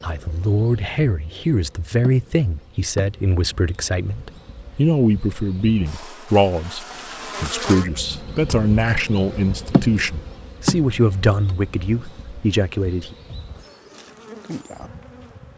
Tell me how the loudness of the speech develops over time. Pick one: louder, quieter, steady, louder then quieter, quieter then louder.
steady.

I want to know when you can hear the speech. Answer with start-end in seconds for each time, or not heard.
0.0-13.2.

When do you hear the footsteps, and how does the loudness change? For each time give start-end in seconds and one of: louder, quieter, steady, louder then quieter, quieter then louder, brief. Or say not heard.
not heard.